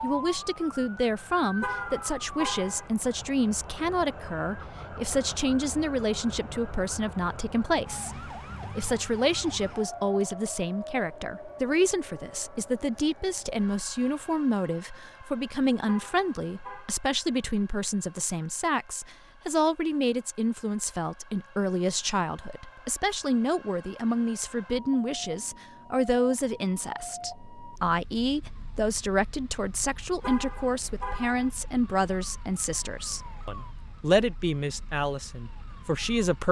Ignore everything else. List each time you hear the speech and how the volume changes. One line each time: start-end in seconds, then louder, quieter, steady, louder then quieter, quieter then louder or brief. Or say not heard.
0.0-36.4 steady.